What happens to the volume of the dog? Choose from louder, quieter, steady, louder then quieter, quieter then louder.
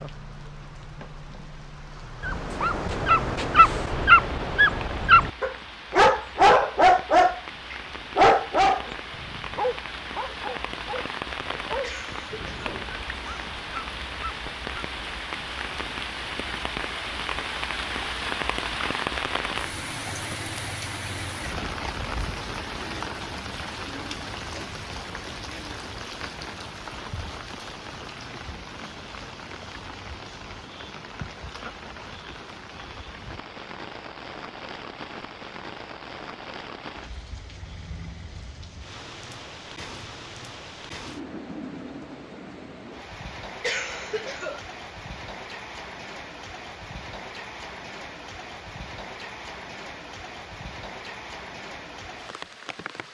quieter.